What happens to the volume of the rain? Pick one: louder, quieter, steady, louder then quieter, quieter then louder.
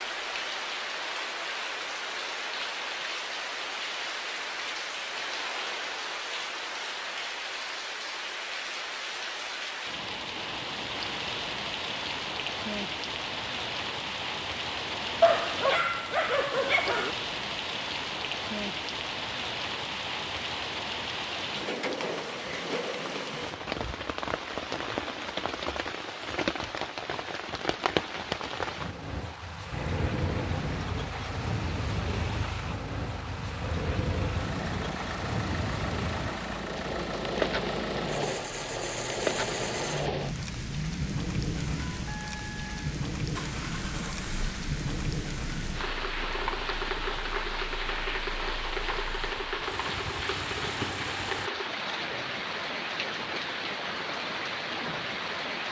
steady.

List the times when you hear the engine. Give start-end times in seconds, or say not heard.
29.7-51.5.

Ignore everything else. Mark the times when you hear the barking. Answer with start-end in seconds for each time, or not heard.
15.2-17.1.